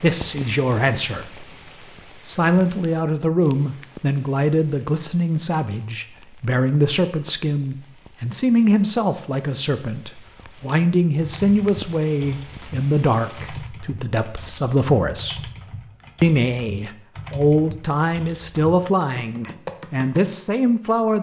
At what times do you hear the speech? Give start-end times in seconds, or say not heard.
0.0-1.4, 2.2-15.5, 16.2-21.1.